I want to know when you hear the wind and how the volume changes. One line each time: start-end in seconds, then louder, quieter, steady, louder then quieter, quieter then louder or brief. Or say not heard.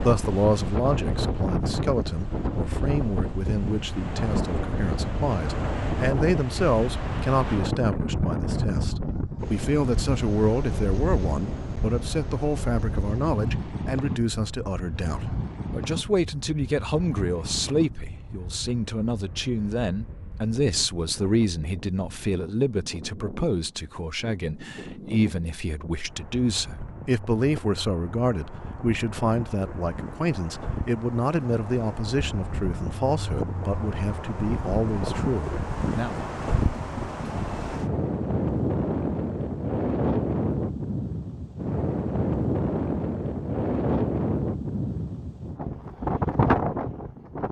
0.0-47.4 quieter then louder.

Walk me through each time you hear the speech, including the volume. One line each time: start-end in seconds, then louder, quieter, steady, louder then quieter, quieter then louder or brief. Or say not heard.
0.0-36.2 steady.